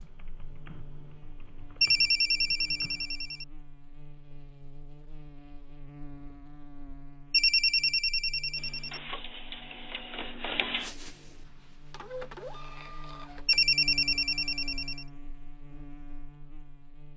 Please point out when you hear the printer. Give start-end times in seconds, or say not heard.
8.6-13.6.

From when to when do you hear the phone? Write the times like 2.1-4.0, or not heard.
1.8-3.5, 7.3-9.0, 13.4-15.1.